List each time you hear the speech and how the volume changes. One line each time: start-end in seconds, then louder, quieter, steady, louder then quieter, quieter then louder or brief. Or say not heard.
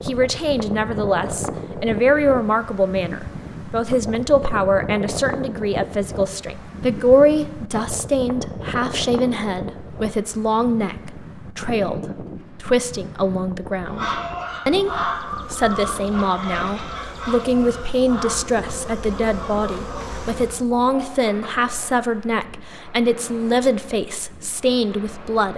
0.0-25.5 steady.